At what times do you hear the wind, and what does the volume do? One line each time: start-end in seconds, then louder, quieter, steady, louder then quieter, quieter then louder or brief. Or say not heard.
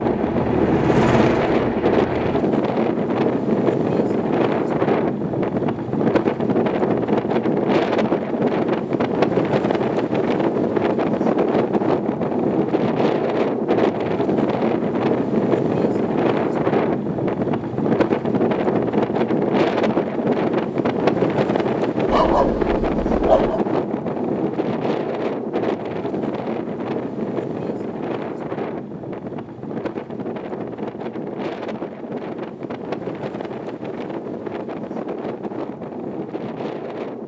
0.0-37.2 quieter.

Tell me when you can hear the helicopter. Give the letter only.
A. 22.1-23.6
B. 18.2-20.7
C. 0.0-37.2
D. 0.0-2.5
D.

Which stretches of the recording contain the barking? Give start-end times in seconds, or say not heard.
22.1-23.6.